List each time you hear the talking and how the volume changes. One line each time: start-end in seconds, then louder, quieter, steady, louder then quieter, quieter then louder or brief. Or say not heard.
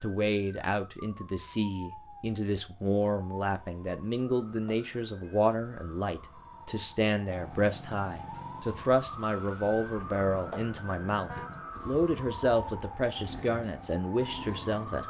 0.0-15.0 steady.